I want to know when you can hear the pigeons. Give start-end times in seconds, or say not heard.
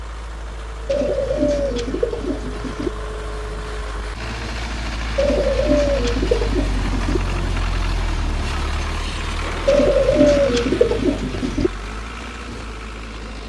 0.8-2.9, 5.2-7.2, 9.7-11.7.